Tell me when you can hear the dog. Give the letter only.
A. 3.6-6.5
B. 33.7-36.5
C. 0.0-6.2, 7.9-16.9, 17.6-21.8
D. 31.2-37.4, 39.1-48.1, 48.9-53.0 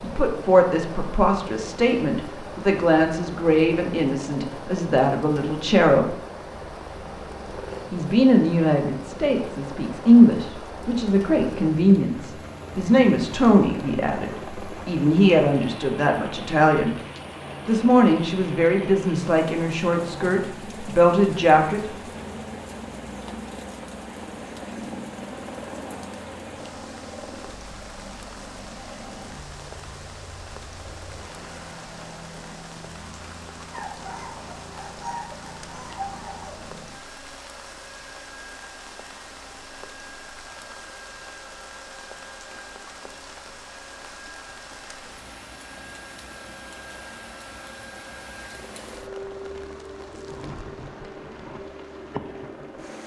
B.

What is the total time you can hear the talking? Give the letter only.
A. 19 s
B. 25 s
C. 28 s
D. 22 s
A.